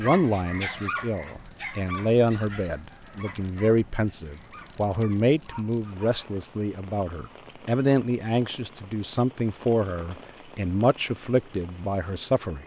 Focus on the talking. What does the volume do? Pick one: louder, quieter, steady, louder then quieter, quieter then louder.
steady.